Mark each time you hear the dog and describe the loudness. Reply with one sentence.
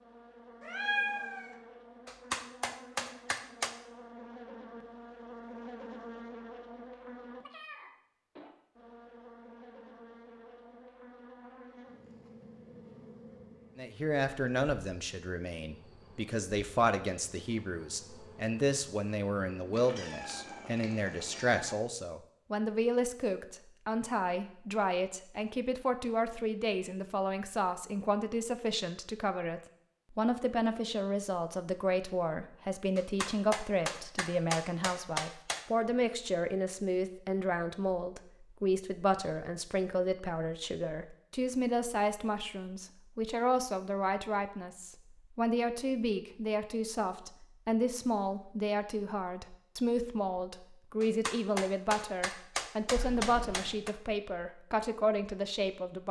The dog can't be heard in this clip.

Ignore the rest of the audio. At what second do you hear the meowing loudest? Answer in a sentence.
The loudest moment of the meowing is at 1 second.